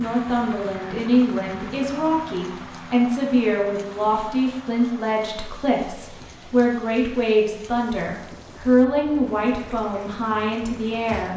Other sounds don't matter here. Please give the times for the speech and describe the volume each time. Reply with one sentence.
The speech can be heard from 0.0 to 11.3 s, at a steady volume.